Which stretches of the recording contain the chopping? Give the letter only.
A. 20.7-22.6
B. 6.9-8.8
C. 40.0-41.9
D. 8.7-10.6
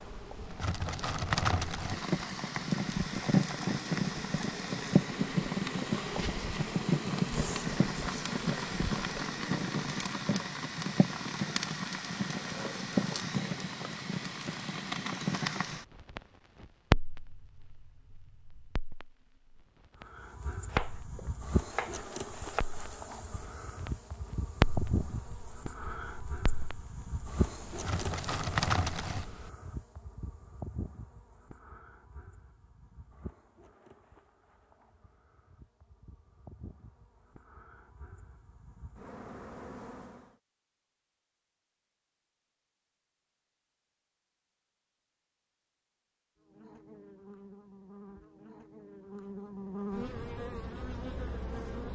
A.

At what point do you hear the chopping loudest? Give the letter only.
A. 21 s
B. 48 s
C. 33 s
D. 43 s
A.